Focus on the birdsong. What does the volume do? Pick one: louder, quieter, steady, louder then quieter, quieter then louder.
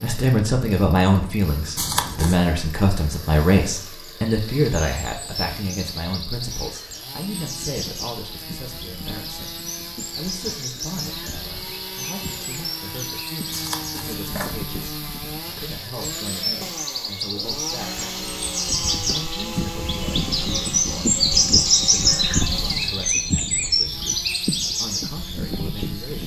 louder.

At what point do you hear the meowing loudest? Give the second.
2 s.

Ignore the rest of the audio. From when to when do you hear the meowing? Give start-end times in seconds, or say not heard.
1.8-2.4, 13.5-14.8.